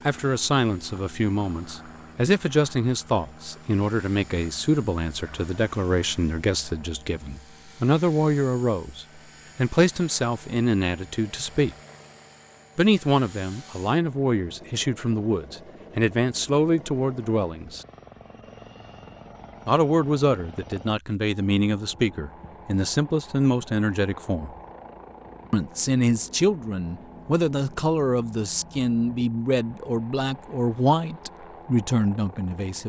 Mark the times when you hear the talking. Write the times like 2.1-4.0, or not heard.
0.1-11.8, 12.8-17.9, 19.6-24.6, 25.5-32.8.